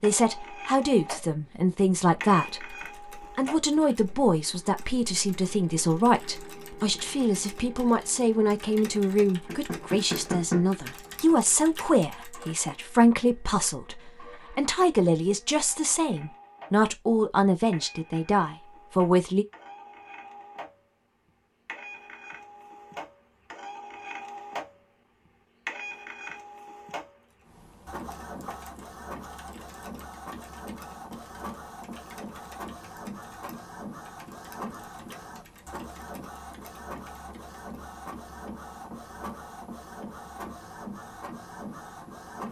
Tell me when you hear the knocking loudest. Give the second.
10 s.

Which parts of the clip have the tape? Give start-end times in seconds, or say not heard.
not heard.